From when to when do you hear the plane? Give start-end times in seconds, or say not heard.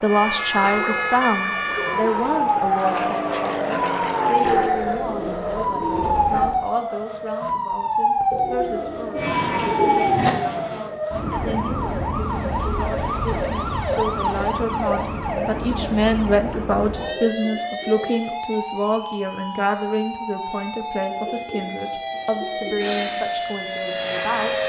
0.0-4.7, 9.2-10.8, 22.8-24.6.